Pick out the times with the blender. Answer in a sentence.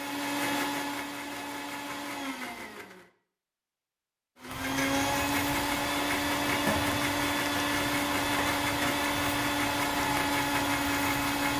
You can hear the blender from 0.0 to 3.1 s and from 4.4 to 11.5 s.